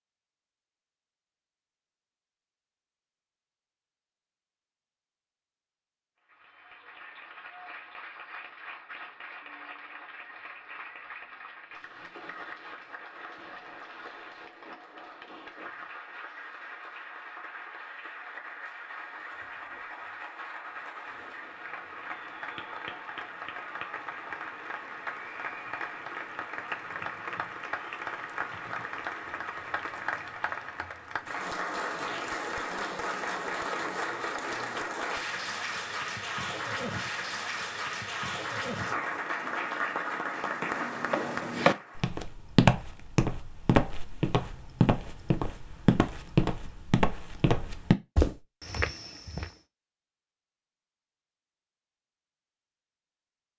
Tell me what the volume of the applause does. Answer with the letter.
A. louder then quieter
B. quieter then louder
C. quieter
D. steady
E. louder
E.